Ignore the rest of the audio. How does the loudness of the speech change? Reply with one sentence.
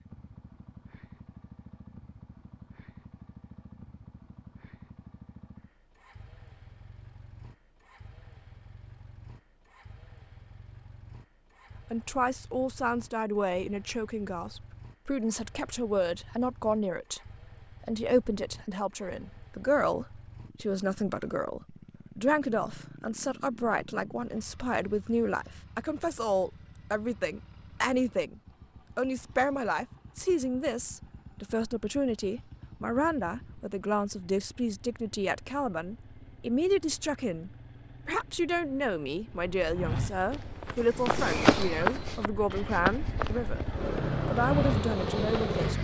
The loudness of the speech stays about the same.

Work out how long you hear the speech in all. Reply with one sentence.
You can hear the speech for 33 seconds altogether.